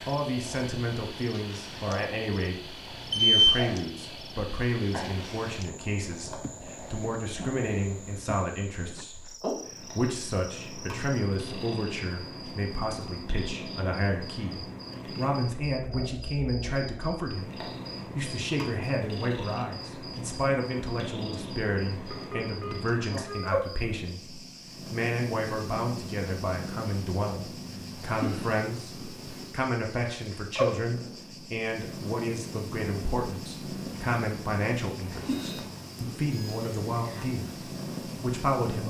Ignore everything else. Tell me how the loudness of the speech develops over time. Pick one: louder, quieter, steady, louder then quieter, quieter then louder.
steady.